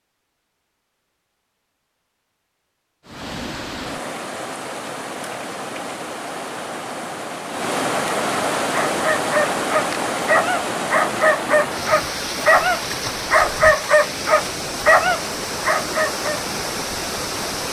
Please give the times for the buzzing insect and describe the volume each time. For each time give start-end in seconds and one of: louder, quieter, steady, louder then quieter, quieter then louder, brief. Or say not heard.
not heard.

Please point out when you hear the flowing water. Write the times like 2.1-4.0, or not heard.
3.0-17.6.